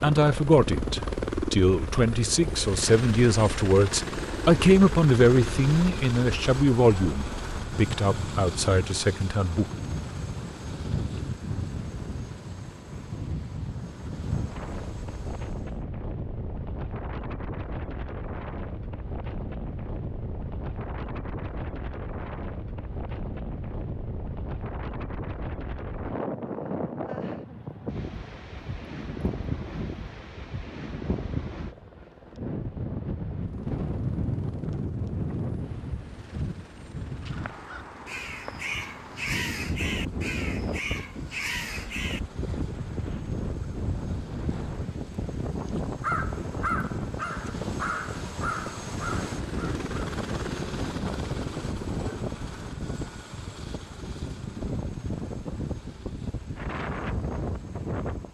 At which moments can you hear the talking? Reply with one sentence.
You can hear the talking from 0.0 to 9.7 s.